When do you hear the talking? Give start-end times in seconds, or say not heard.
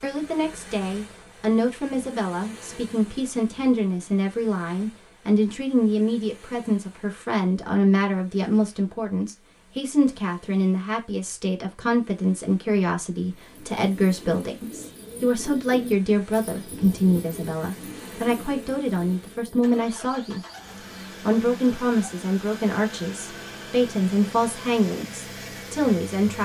0.0-20.4, 21.2-26.4.